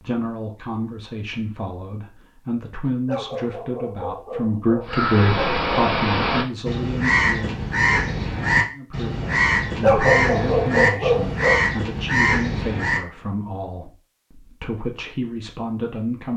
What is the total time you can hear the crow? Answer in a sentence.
You can hear the crow for 8 seconds altogether.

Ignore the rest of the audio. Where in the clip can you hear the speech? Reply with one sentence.
The speech can be heard from 0.0 to 7.5 s and from 8.7 to 16.3 s.